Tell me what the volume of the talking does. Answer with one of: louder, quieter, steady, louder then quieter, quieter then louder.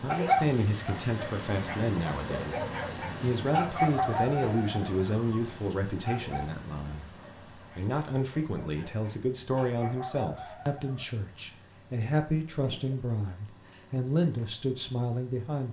steady.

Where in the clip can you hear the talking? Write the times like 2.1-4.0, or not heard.
0.0-15.6.